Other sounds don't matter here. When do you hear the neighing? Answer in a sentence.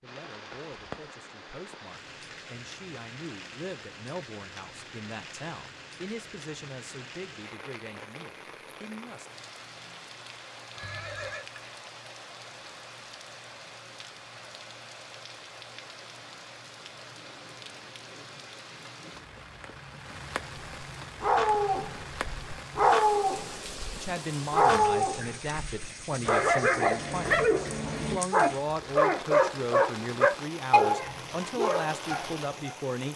The neighing can be heard from 10.8 to 11.4 s.